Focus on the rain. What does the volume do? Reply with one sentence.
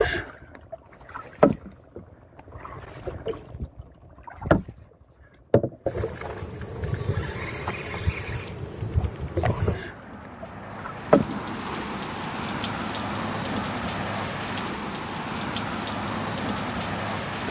The volume of the rain goes up.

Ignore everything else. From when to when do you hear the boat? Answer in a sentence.
You can hear the boat from 0.0 to 11.3 s.